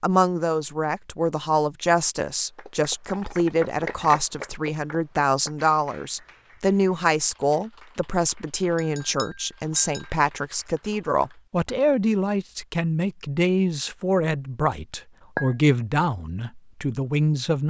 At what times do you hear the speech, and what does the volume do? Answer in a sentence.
You can hear the speech from 0.0 to 17.6 s, at a steady volume.